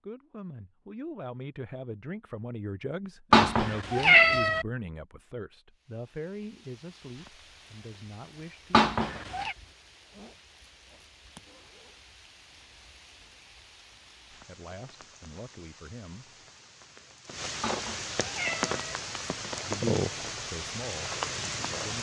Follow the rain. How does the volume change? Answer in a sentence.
The volume of the rain goes up.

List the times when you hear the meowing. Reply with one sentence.
The meowing can be heard from 3.3 to 4.7 s, from 8.7 to 9.6 s and from 17.6 to 18.9 s.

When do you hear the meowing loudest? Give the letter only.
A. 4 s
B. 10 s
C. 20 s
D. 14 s
A.